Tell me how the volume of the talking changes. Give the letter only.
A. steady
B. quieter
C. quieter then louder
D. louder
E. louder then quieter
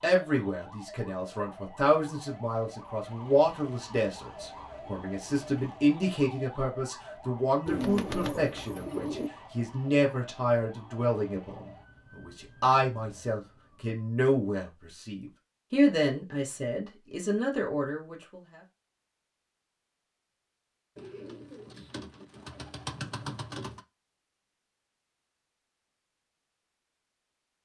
A.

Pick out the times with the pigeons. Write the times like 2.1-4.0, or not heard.
7.7-9.3, 20.9-23.8.